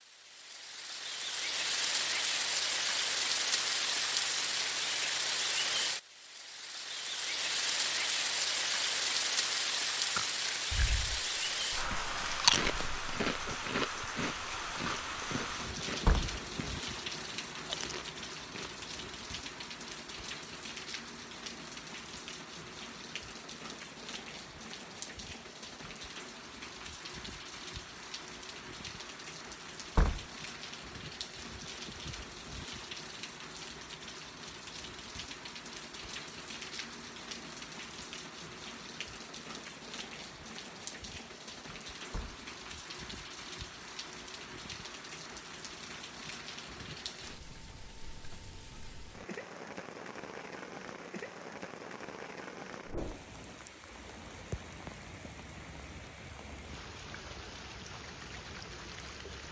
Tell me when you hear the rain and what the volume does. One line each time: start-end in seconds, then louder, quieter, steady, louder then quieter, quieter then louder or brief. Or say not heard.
0.1-59.4 quieter.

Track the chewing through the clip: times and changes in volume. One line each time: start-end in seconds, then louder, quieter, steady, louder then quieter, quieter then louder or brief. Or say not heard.
10.2-11.4 brief
12.3-16.8 quieter
17.6-19.1 brief.